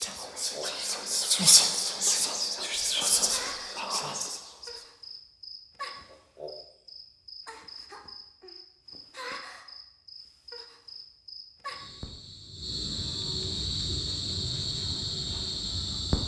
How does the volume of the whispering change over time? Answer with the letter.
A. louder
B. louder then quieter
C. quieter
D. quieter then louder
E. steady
B.